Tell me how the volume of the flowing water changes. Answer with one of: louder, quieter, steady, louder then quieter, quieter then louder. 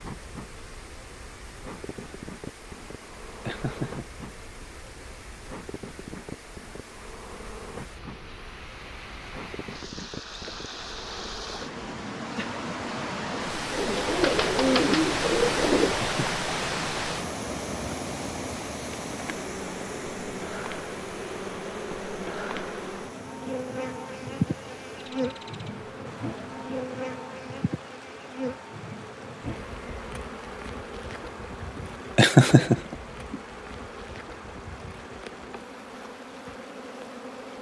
louder then quieter.